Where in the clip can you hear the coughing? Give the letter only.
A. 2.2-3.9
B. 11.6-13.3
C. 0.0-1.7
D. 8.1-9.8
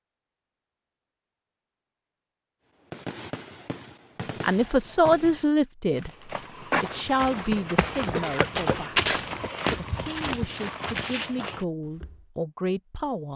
D.